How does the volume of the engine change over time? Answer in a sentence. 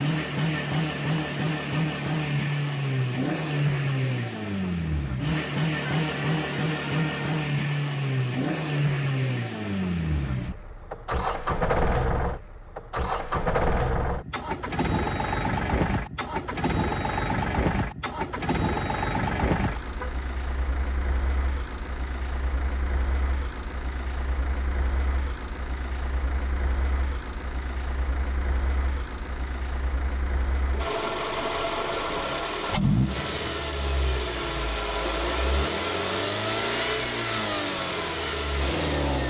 The volume of the engine goes down, then up.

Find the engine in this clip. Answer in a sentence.
The engine can be heard from 0.0 to 39.2 s.